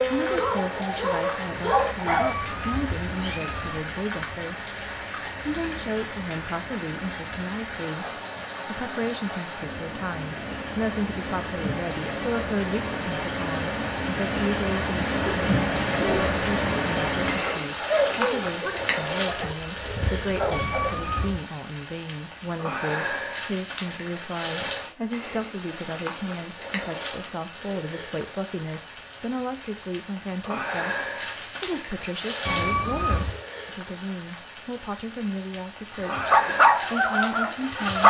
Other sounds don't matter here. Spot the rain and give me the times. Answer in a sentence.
You can hear the rain from 0.0 to 38.0 s.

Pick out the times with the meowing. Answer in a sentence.
You can hear the meowing from 2.0 to 3.9 s, from 20.5 to 21.4 s and from 32.4 to 33.4 s.